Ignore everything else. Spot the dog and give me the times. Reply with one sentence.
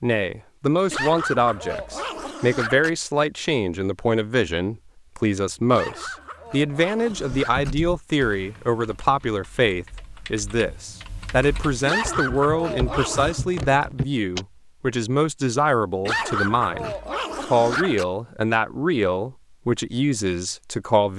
You can hear the dog from 0.9 to 2.9 s, from 5.7 to 7.8 s, from 11.8 to 13.4 s and from 16.1 to 18.1 s.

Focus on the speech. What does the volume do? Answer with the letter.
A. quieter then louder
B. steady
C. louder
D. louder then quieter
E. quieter
B.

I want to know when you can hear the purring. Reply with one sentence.
The purring can't be heard in this clip.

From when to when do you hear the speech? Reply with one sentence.
The speech can be heard from 0.0 to 21.1 s.